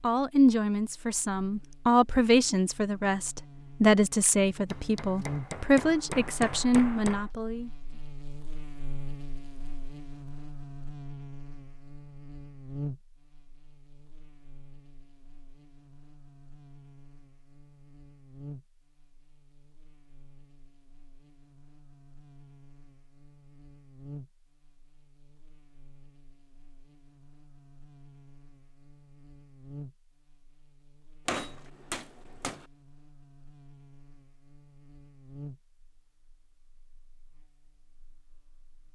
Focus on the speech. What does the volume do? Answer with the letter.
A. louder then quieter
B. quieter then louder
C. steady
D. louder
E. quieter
C.